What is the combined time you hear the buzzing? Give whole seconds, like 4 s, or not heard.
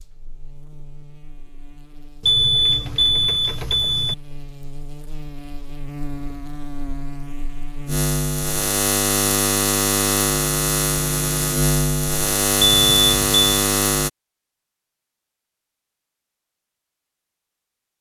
14 s.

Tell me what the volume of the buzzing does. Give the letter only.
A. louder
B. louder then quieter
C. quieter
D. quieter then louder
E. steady
A.